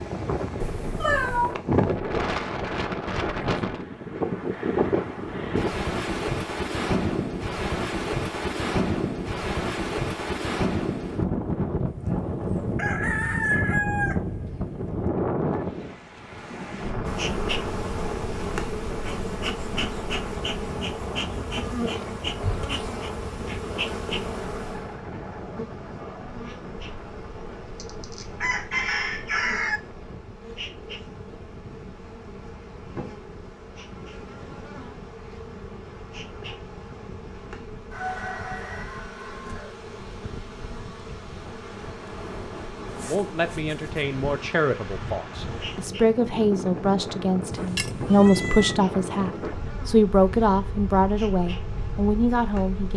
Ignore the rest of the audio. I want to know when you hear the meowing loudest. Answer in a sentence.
The loudest moment of the meowing is at 1 second.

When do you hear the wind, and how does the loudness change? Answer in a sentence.
The wind can be heard from 0.0 to 52.9 s, getting quieter then louder.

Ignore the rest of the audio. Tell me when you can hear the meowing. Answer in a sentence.
You can hear the meowing from 0.6 to 1.6 s and from 47.5 to 48.8 s.